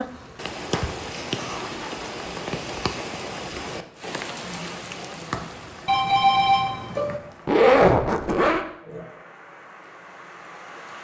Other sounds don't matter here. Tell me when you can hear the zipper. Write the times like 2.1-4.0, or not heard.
0.6-1.9, 7.5-8.7.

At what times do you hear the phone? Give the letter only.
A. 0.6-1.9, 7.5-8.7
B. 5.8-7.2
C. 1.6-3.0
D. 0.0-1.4
B.